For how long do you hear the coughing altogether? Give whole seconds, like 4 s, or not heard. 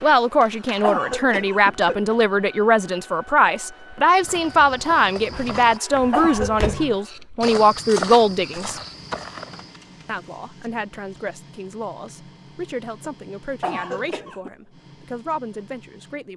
3 s.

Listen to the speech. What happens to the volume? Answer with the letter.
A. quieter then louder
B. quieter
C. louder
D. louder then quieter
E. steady
B.